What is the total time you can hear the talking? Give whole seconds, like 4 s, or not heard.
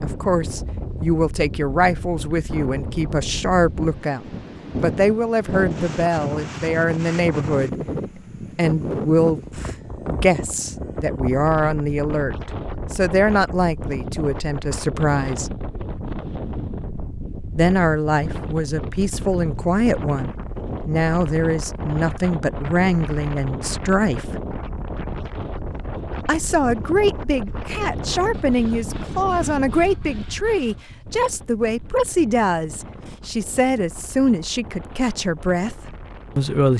33 s.